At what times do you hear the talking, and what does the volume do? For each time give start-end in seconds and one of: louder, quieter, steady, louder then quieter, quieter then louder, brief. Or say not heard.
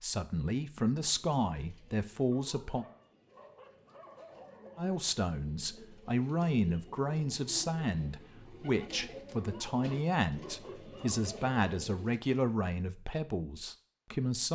0.0-2.9 brief
4.8-14.4 steady.